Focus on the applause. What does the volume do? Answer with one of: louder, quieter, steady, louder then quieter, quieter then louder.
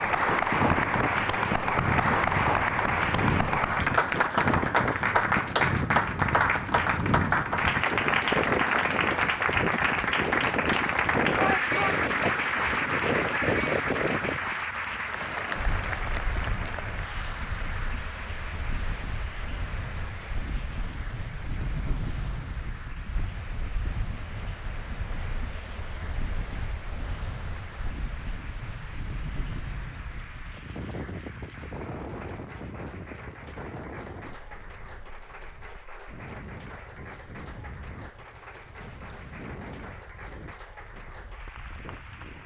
quieter.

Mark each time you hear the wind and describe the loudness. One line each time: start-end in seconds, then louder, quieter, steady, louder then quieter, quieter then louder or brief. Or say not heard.
0.0-42.4 quieter.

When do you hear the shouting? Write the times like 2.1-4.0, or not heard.
11.3-11.9.